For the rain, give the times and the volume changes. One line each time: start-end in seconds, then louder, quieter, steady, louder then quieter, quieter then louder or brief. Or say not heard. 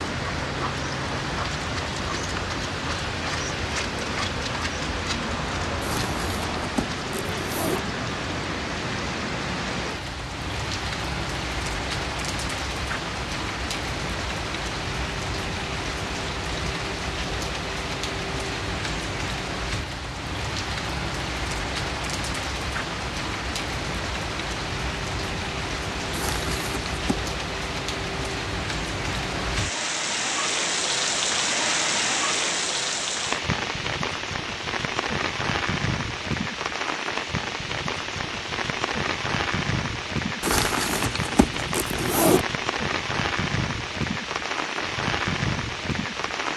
0.0-46.5 steady.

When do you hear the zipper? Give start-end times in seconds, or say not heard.
5.8-7.8, 26.1-27.2, 40.4-42.5.